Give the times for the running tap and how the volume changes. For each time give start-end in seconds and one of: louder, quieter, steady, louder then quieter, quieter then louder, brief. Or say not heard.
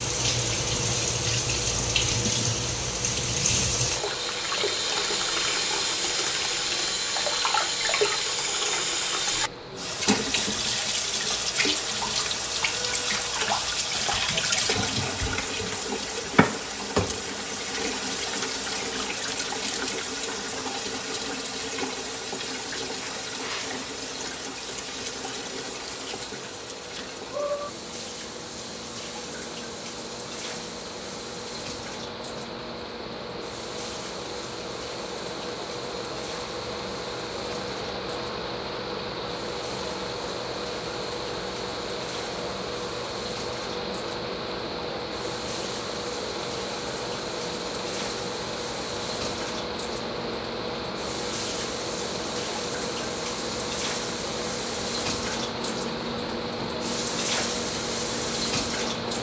0.0-59.1 quieter then louder.